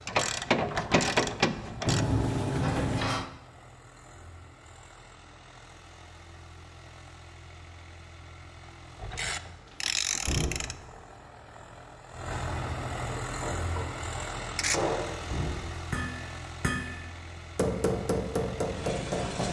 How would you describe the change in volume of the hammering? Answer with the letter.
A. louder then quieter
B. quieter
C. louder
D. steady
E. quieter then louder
C.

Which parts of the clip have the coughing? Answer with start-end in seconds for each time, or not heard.
not heard.